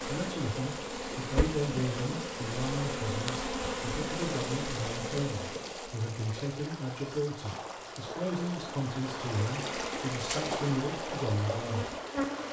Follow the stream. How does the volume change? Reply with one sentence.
The volume of the stream goes up.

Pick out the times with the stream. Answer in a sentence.
You can hear the stream from 0.2 to 12.4 s.